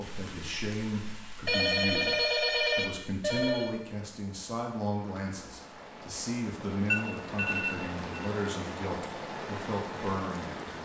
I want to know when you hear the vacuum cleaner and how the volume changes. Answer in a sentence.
The vacuum cleaner can't be heard in this clip.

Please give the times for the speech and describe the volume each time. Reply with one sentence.
The speech can be heard from 0.0 to 10.8 s, at a steady volume.